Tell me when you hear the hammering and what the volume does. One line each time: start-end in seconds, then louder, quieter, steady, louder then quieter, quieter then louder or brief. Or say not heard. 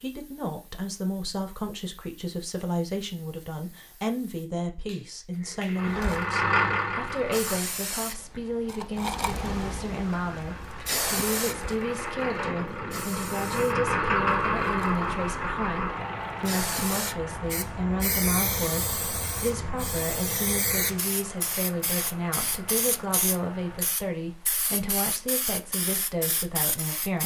not heard.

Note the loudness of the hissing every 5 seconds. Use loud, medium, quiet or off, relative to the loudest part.
quiet, loud, loud, loud, loud, loud.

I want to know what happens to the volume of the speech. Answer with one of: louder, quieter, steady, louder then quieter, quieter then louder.
steady.